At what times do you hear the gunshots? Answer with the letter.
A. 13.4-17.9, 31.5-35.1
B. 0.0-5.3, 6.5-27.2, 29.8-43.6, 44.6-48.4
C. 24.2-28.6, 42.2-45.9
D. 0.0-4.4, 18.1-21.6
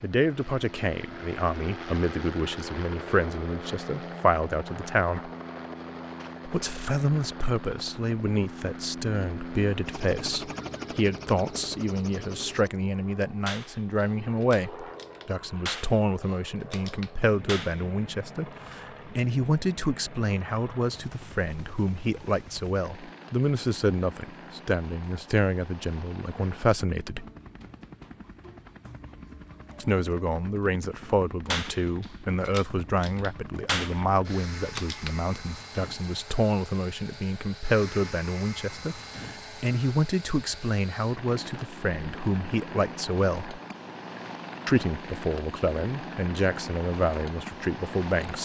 A.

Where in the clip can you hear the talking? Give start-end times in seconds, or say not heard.
0.0-5.3, 6.5-27.2, 29.8-43.6, 44.6-48.4.